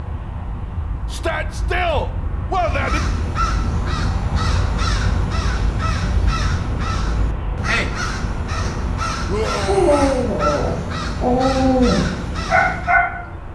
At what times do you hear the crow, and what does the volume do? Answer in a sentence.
The crow can be heard from 2.5 to 13.0 s, at a steady volume.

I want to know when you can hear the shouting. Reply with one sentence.
The shouting can be heard from 1.1 to 3.0 s and from 9.2 to 10.2 s.